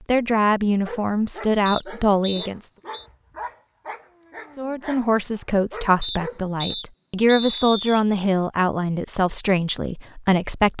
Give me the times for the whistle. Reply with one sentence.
The whistle can be heard from 1.6 to 3.0 s and from 6.0 to 8.0 s.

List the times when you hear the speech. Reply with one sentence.
The speech can be heard from 0.1 to 2.7 s and from 4.5 to 10.7 s.